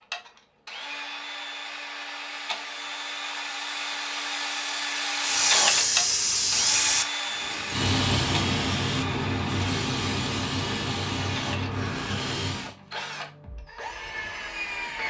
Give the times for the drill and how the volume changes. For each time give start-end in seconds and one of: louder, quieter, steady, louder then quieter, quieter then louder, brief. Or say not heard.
0.1-15.0 louder then quieter.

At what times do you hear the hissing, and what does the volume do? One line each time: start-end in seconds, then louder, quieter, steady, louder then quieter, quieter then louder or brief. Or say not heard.
5.2-12.8 quieter.